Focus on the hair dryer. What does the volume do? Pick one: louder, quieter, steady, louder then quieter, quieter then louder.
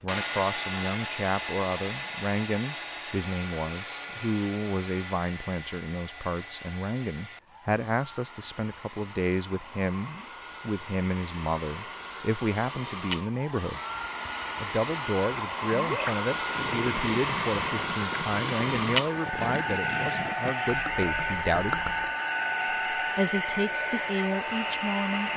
quieter then louder.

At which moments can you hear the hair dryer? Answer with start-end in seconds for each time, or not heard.
0.1-25.3.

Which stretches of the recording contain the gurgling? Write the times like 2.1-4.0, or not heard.
15.7-22.1.